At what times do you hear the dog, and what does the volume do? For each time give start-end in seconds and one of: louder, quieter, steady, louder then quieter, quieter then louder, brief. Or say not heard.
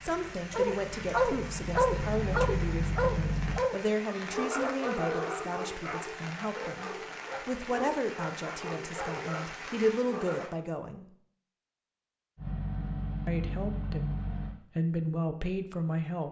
0.5-10.6 quieter.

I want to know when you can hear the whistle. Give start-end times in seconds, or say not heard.
not heard.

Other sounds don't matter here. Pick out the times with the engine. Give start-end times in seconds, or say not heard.
0.0-3.6, 12.3-14.6.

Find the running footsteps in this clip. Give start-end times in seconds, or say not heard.
not heard.